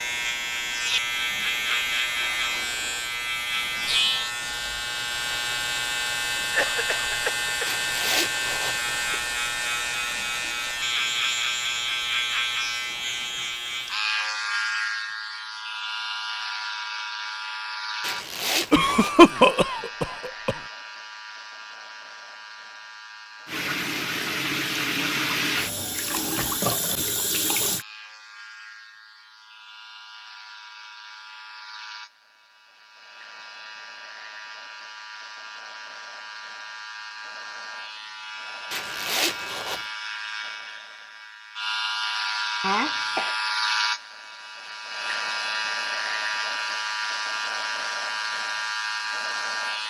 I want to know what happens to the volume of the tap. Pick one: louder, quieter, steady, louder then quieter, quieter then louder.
steady.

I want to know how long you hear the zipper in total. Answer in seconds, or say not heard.
4 s.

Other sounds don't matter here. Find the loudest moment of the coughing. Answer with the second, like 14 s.
19 s.